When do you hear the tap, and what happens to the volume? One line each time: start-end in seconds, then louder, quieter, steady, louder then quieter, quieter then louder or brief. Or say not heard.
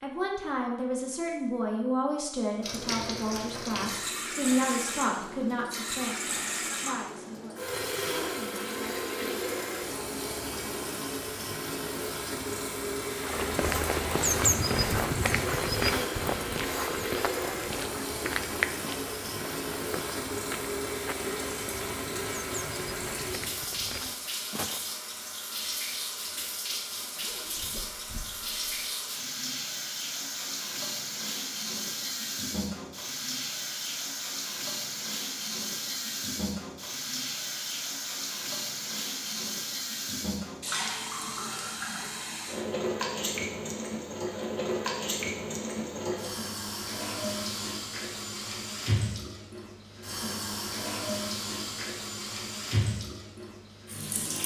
2.6-54.4 steady.